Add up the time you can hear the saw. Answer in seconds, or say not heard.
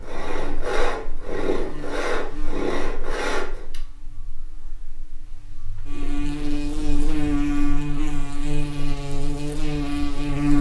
4 s.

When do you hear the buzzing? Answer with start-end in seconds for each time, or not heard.
0.2-10.5.